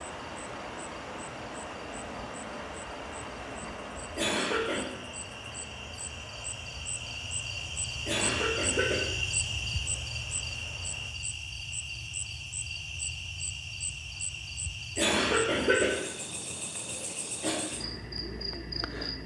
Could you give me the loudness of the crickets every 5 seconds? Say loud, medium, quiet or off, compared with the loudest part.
quiet, loud, loud, loud.